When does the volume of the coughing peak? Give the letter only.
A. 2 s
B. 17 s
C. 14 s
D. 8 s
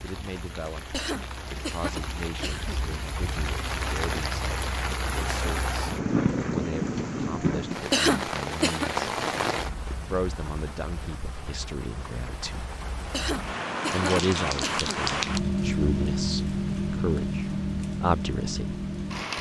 D.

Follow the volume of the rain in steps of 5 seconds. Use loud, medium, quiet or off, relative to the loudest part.
medium, loud, medium, loud.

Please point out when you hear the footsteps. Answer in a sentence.
You can't hear the footsteps here.